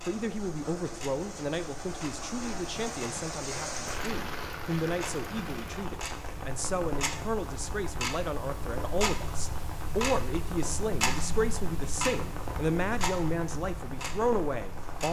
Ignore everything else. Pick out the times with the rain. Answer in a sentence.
You can hear the rain from 0.0 to 15.0 s.